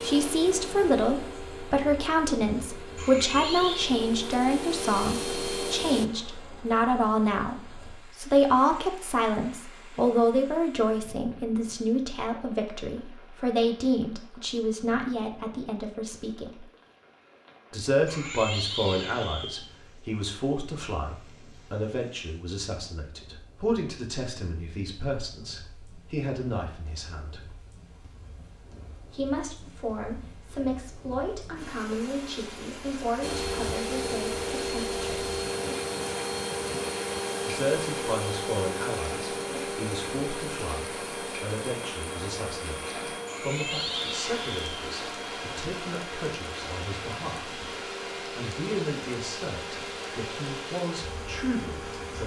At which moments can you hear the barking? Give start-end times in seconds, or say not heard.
not heard.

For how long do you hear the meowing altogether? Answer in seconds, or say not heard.
4 s.